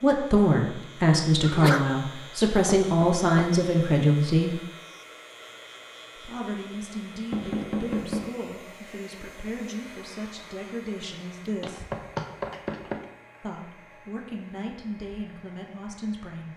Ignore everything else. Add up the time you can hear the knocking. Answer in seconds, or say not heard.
3 s.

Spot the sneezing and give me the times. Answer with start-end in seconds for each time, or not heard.
1.4-1.9.